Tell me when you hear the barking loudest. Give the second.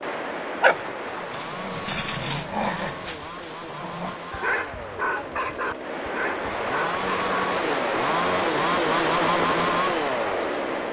1 s.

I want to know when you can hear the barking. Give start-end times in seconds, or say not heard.
0.6-7.5.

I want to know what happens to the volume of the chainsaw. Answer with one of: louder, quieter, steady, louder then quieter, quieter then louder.
louder.